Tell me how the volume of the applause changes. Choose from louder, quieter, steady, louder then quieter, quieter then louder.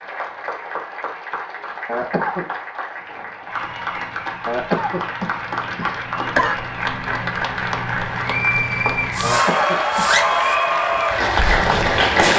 louder.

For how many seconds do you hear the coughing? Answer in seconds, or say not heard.
4 s.